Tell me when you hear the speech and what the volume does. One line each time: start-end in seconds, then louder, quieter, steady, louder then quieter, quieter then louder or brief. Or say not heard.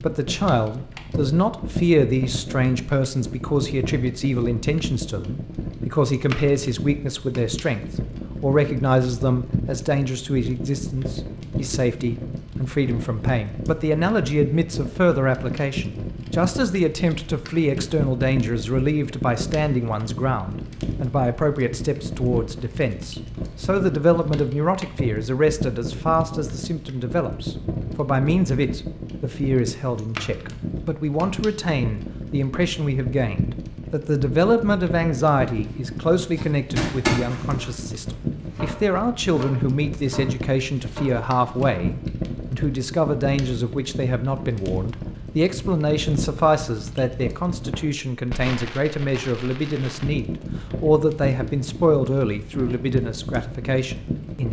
0.0-54.4 steady.